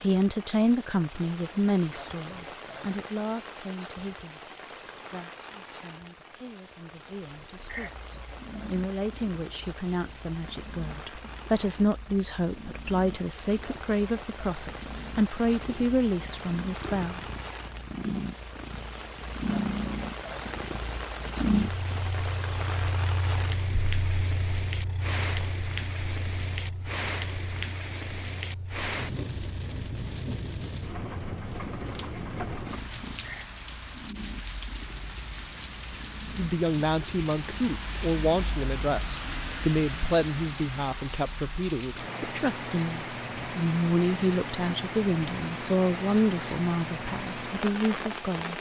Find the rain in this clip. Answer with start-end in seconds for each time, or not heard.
0.0-48.5.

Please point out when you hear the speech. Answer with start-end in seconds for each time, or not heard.
0.0-17.2, 36.4-48.5.